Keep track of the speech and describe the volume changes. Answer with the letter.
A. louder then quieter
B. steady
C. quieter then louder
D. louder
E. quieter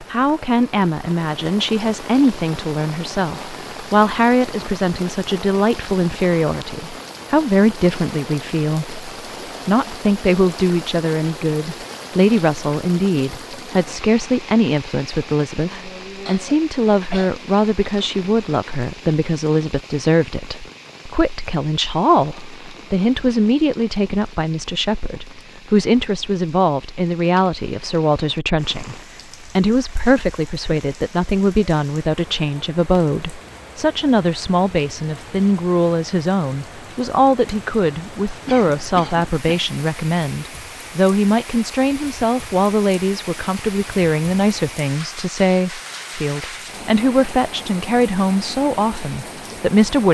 B.